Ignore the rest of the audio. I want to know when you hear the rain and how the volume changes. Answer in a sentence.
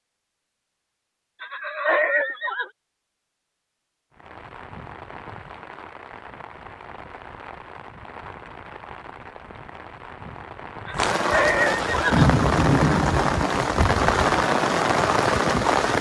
The rain can be heard from 4.1 to 15.9 s, getting louder.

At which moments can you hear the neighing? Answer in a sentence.
You can hear the neighing from 1.4 to 2.7 s and from 10.8 to 12.2 s.